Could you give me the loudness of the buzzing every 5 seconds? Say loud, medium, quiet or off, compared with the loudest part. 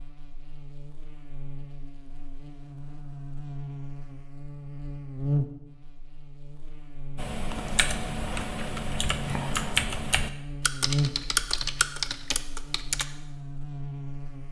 medium, loud, loud.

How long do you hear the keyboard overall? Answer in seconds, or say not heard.
6 s.